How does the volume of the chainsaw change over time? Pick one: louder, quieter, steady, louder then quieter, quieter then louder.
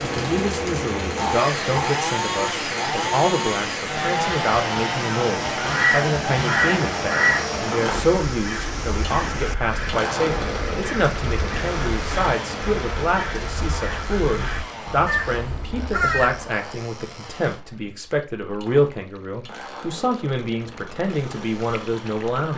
quieter.